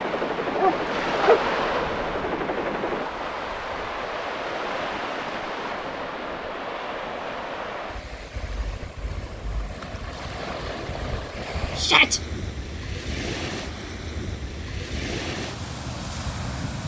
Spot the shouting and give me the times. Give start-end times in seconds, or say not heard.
11.8-12.2.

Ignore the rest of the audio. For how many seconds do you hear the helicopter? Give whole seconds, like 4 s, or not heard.
3 s.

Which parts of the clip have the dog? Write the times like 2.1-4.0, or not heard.
0.6-1.4.